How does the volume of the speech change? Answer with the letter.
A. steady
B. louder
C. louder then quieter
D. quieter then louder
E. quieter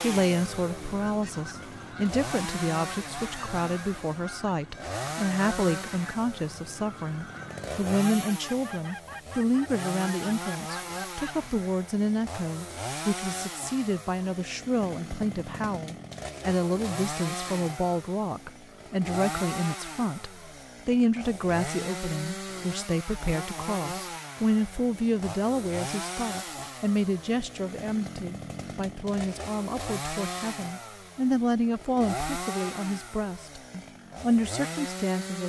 A.